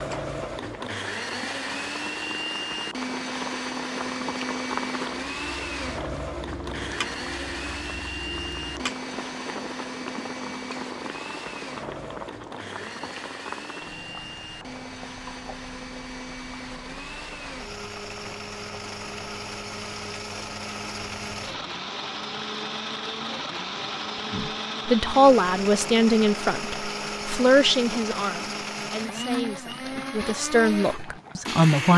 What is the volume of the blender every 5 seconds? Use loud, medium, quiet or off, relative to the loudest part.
loud, loud, medium, medium, loud, loud, loud.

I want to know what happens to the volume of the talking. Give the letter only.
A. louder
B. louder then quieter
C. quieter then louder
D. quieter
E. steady
C.